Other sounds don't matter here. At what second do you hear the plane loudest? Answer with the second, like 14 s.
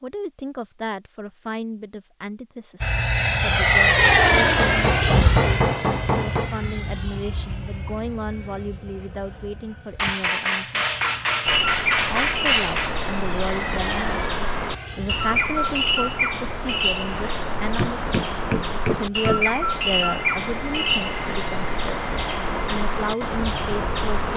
4 s.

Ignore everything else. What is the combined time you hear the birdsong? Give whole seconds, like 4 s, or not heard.
13 s.